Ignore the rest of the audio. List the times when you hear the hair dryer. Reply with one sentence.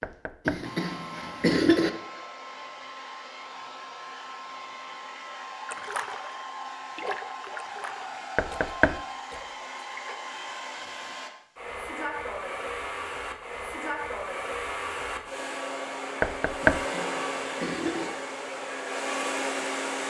You can hear the hair dryer from 0.0 to 20.0 s.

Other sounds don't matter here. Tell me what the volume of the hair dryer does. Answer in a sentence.
The loudness of the hair dryer goes up.